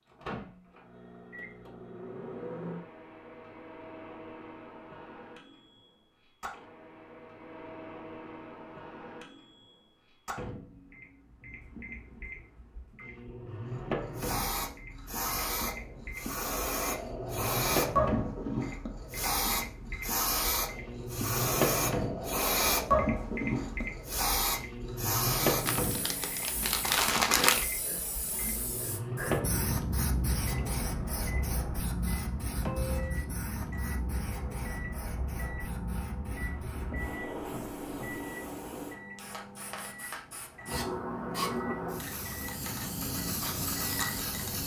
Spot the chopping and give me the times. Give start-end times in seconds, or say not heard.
not heard.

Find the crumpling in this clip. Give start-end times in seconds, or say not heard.
25.6-27.6.